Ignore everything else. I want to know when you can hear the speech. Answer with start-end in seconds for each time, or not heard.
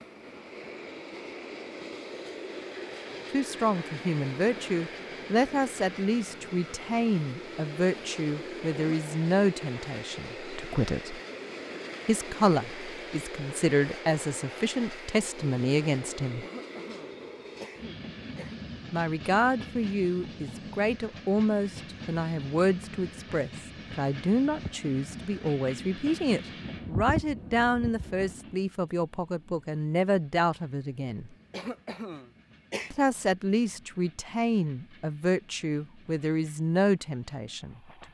3.3-11.2, 12.1-16.4, 18.9-31.3, 32.9-37.8.